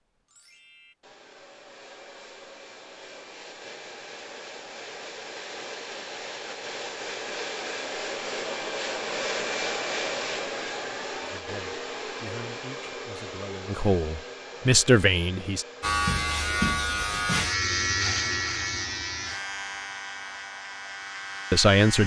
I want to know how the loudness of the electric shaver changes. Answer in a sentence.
The loudness of the electric shaver goes down.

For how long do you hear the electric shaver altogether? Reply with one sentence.
You can hear the electric shaver for 6 seconds altogether.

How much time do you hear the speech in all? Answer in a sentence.
The speech can be heard for 5 seconds in total.